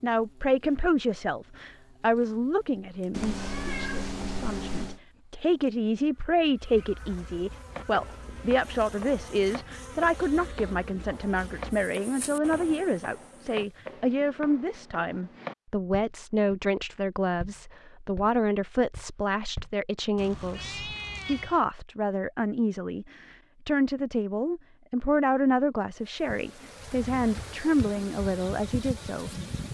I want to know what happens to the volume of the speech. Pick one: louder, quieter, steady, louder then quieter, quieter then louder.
steady.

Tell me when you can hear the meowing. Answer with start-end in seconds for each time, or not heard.
3.1-5.0, 20.1-21.6.